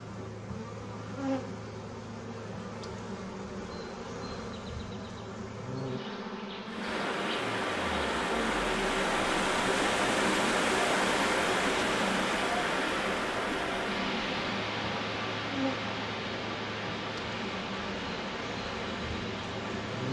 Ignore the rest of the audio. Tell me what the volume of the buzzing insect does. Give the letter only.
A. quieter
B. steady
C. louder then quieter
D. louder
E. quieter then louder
B.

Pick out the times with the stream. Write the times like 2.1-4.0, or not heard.
6.7-20.0.